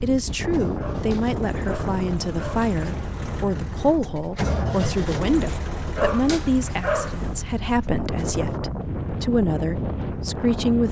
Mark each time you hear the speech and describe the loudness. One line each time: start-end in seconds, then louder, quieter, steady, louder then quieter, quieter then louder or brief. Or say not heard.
0.0-10.8 steady.